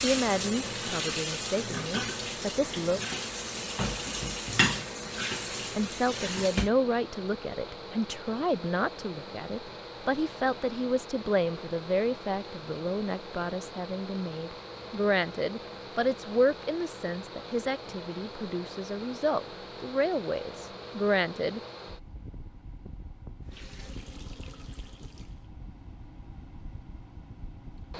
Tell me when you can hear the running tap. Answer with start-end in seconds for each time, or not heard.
0.0-6.7, 23.4-25.5.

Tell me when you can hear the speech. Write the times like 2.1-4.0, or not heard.
0.0-3.0, 5.8-21.6.